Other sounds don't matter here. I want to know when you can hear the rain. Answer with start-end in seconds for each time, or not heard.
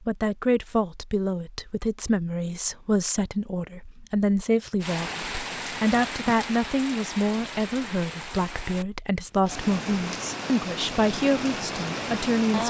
4.8-12.6.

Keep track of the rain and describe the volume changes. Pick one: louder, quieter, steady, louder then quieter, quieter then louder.
quieter then louder.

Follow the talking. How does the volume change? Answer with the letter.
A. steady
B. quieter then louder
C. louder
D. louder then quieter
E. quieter
A.